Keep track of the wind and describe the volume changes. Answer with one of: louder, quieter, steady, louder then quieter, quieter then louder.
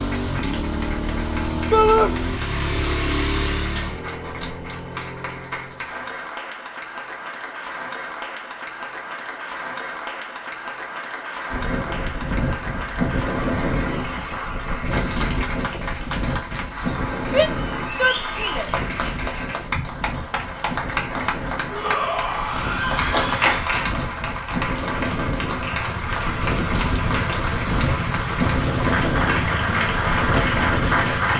quieter then louder.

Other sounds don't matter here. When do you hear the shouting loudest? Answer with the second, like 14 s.
2 s.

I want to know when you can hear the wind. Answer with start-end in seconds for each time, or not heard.
11.5-31.3.